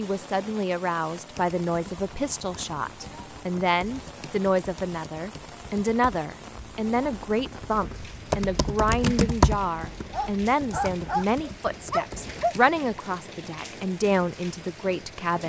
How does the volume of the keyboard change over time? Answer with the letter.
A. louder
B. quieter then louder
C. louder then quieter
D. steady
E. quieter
C.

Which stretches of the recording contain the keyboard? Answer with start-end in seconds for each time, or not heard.
1.3-12.8.